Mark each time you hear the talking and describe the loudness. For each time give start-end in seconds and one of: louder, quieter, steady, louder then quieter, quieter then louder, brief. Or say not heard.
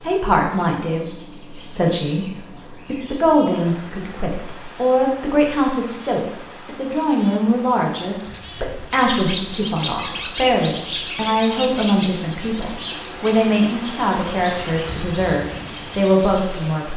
0.0-16.9 steady.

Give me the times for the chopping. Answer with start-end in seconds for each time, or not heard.
not heard.